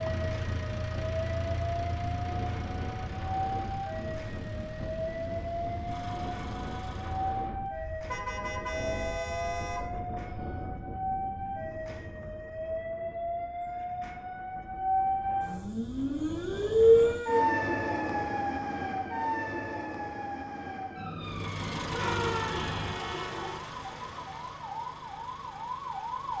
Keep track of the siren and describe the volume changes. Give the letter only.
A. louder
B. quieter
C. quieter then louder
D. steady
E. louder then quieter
E.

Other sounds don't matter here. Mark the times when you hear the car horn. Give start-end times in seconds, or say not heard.
8.1-9.8, 22.1-23.6.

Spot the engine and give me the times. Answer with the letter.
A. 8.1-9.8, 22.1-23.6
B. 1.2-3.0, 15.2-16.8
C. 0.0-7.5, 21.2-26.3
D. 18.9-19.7
C.